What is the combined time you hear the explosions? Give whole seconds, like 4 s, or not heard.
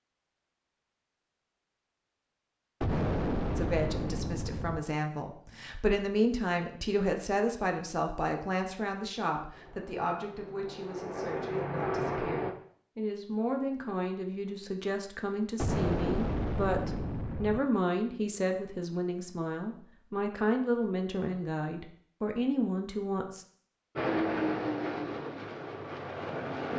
4 s.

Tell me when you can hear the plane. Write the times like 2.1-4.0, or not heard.
9.5-12.6, 23.9-26.7.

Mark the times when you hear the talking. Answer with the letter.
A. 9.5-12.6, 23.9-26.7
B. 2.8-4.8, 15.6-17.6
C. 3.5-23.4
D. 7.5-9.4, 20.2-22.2
C.